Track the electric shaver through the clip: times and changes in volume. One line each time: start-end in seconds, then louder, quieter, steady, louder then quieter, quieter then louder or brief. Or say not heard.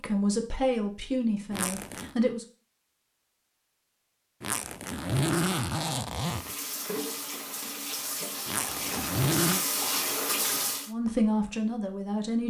not heard.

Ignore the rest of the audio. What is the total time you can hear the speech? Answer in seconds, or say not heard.
4 s.